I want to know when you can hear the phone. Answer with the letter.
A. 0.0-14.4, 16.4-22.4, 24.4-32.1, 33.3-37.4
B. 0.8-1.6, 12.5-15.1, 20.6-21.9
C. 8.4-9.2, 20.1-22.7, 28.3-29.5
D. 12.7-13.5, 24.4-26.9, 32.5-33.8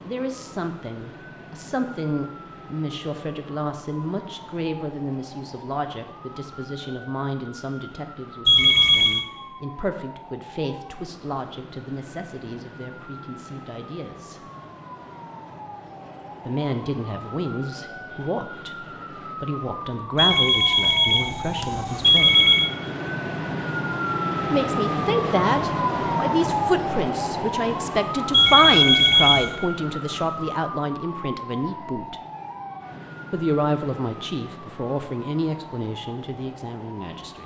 C.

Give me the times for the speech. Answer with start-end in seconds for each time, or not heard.
0.0-14.4, 16.4-22.4, 24.4-32.1, 33.3-37.4.